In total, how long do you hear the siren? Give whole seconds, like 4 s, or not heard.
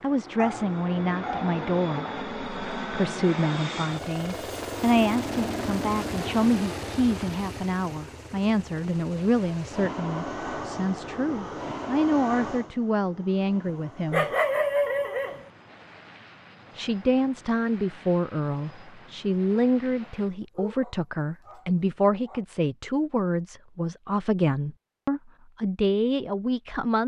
not heard.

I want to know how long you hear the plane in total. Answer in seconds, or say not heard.
20 s.